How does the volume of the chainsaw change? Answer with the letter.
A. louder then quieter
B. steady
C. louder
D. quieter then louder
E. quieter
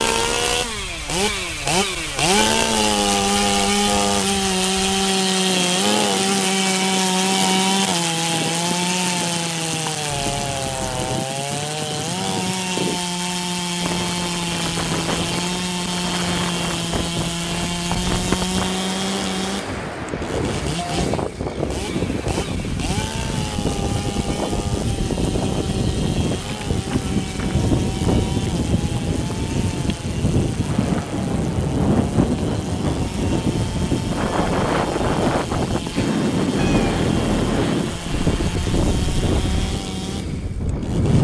E.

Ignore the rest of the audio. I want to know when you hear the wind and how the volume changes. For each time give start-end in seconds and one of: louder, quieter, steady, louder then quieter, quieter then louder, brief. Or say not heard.
0.1-41.1 louder.